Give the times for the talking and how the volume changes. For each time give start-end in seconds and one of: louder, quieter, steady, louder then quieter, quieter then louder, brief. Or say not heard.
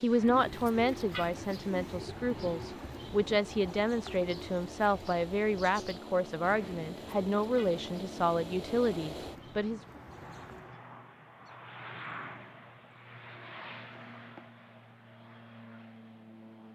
0.0-9.8 steady.